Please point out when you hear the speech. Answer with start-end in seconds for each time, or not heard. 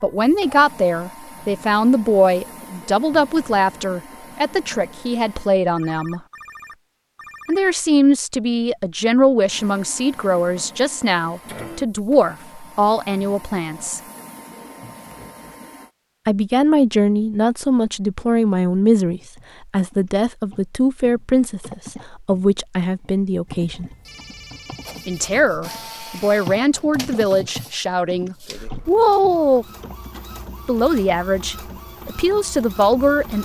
0.0-6.2, 7.5-14.0, 16.2-23.9, 25.1-29.6, 30.6-33.3.